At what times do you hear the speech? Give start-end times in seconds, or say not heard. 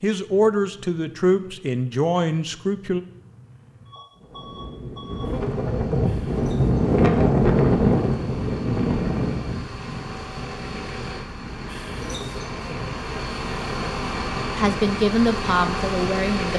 0.0-3.0, 14.6-16.5.